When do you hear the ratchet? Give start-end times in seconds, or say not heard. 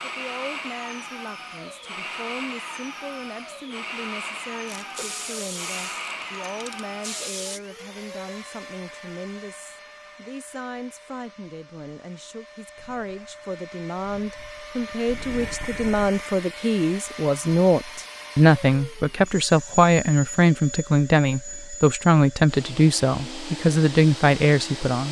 4.7-7.6.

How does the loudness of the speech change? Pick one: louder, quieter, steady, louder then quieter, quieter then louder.
louder.